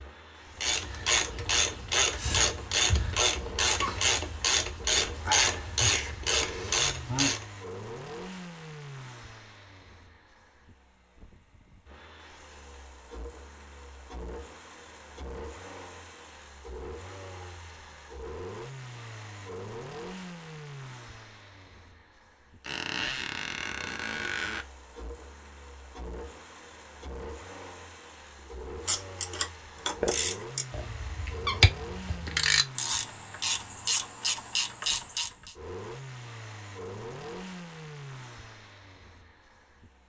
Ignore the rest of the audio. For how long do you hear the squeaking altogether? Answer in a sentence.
You can hear the squeaking for 3 seconds altogether.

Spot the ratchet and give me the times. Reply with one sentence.
The ratchet can be heard from 0.6 to 7.5 s and from 28.9 to 35.5 s.